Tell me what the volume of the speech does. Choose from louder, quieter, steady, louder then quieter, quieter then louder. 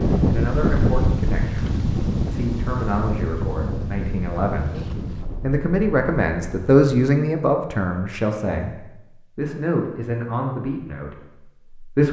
louder then quieter.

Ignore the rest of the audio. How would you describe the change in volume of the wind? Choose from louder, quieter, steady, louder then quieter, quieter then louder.
quieter.